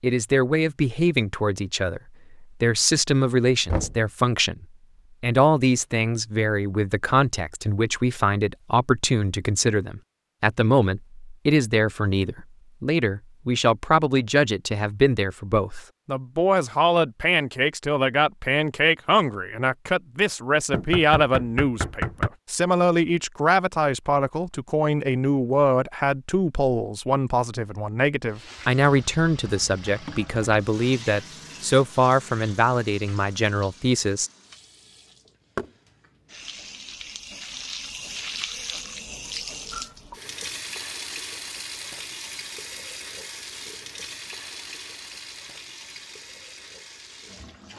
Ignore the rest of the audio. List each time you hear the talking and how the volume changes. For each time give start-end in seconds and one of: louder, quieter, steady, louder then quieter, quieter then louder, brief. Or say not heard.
0.0-34.3 steady.